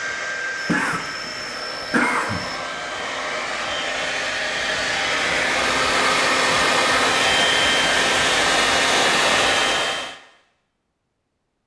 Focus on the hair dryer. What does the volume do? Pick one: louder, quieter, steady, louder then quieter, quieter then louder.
louder.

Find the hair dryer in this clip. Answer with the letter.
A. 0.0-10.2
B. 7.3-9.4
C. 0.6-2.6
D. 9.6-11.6
A.